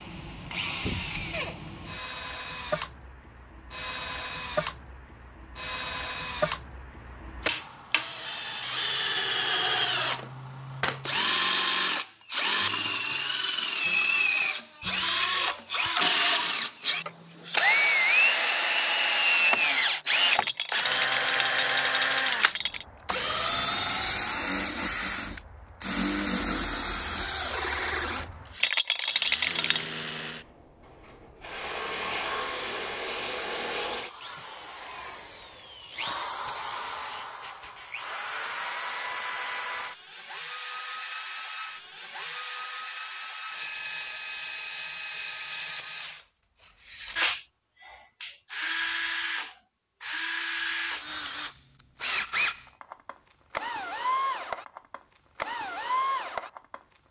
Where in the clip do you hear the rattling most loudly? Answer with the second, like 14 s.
29 s.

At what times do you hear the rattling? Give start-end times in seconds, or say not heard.
20.3-22.9, 28.6-29.9.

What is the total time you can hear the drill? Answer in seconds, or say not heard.
57 s.